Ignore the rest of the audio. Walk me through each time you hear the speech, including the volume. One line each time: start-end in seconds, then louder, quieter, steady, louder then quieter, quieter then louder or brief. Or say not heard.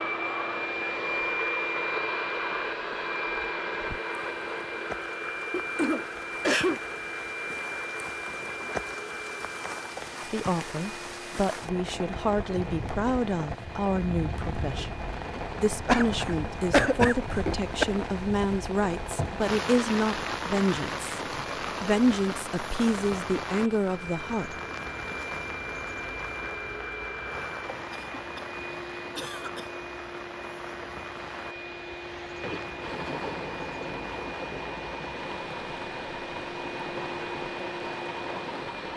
10.3-24.6 steady.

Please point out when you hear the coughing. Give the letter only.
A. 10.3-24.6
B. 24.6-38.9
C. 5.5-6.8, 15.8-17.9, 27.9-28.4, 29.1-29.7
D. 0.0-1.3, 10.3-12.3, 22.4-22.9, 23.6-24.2
C.